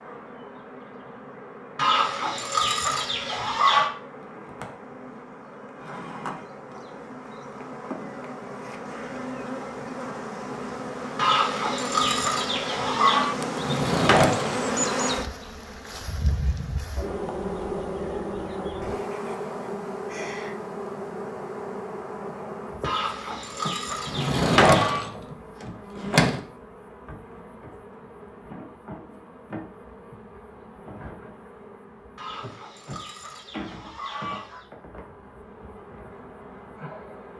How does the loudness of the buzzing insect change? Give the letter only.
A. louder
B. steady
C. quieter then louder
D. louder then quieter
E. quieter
D.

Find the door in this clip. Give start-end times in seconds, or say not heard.
13.6-14.8, 24.1-26.4.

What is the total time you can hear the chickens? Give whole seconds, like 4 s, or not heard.
9 s.